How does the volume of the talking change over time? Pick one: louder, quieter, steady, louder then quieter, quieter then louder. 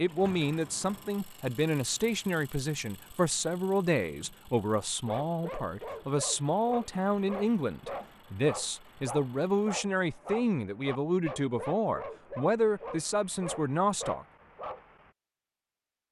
steady.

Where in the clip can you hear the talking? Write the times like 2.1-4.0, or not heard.
0.0-14.2.